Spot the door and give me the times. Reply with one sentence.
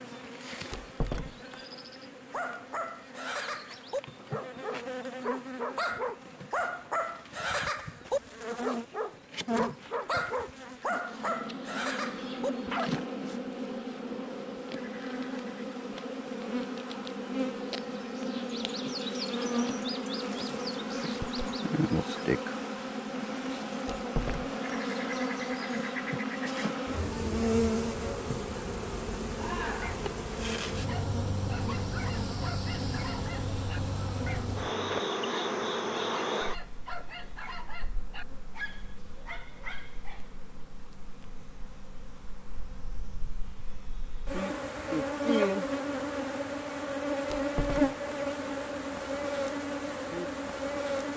The door can be heard from 0.7 to 1.6 s, from 23.9 to 24.5 s and from 47.2 to 48.0 s.